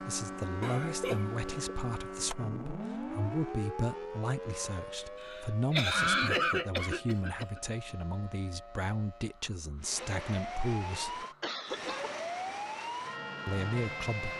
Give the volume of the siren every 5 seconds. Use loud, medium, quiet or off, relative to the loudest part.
loud, medium, loud.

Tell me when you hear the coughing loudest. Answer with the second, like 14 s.
6 s.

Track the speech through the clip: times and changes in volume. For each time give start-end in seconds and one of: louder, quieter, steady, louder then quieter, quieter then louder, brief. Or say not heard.
0.1-11.2 steady
13.4-14.3 brief.